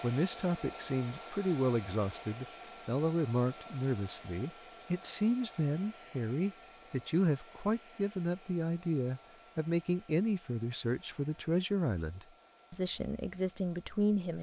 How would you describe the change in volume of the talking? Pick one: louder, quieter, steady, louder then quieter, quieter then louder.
steady.